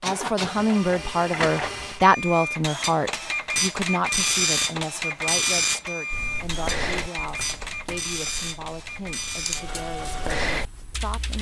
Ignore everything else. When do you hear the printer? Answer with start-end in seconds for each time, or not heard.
0.0-11.3.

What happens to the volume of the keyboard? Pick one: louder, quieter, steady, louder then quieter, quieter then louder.
quieter then louder.